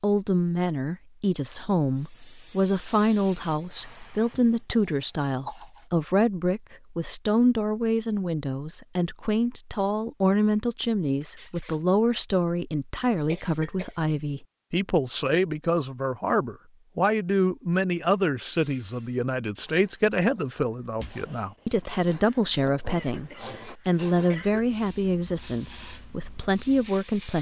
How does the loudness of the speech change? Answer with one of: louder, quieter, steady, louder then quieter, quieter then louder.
steady.